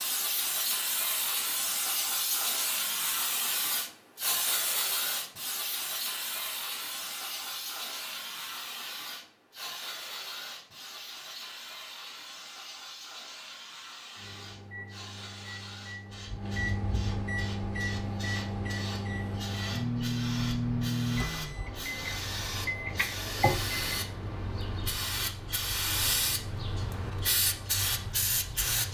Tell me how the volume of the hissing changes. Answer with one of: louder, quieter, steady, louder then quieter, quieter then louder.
quieter then louder.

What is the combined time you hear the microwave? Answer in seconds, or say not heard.
10 s.